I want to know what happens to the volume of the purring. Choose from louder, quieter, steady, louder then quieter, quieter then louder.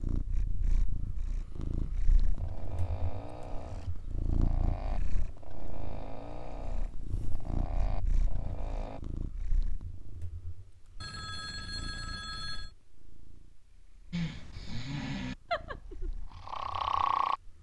quieter.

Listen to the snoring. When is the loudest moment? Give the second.
17 s.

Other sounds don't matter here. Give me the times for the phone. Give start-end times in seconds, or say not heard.
11.0-12.7.